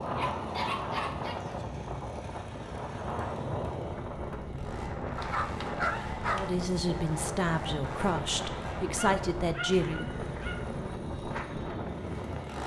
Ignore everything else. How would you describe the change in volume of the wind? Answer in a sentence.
The volume of the wind stays about the same.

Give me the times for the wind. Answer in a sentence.
You can hear the wind from 0.0 to 12.6 s.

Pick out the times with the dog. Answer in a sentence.
The dog can be heard from 0.1 to 1.6 s, from 5.2 to 6.5 s and from 8.8 to 10.8 s.